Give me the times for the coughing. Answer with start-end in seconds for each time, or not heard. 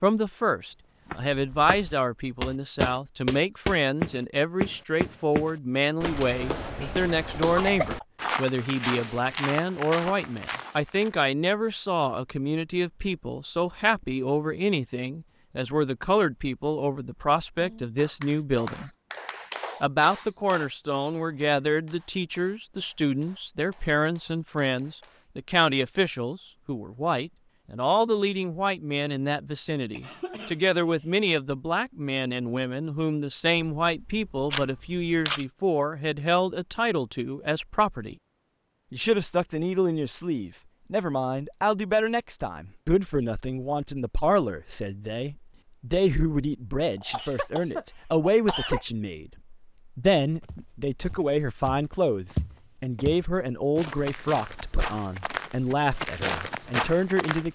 7.3-8.1, 29.9-31.1, 47.0-48.9.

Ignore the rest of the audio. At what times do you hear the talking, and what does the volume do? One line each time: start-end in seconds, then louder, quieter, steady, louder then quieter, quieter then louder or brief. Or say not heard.
0.0-18.9 steady
19.8-38.1 steady
38.9-57.5 steady.